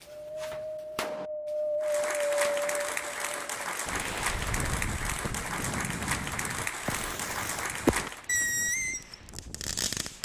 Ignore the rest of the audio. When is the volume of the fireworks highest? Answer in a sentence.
The loudest moment of the fireworks is at 8 seconds.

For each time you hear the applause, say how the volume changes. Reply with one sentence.
You can hear the applause from 1.8 to 8.2 s, at a steady volume.